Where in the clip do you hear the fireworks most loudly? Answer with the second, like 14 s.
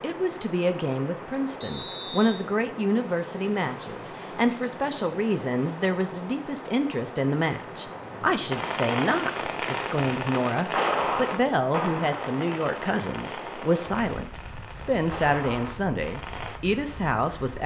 11 s.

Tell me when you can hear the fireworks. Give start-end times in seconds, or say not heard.
8.5-16.6.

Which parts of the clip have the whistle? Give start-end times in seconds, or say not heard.
1.6-2.5.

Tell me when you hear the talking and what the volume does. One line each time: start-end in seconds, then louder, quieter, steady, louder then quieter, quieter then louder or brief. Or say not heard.
0.0-17.6 steady.